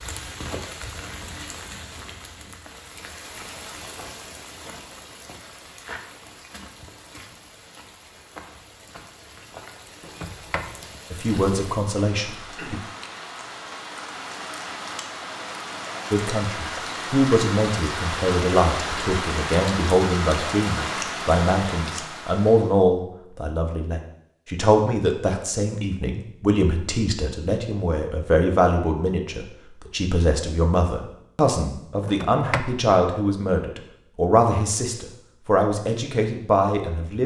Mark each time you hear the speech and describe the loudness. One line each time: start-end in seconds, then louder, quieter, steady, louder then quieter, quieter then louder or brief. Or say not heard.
11.1-12.8 brief
16.1-37.2 steady.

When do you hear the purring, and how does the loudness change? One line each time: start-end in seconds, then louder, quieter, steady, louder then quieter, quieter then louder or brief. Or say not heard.
not heard.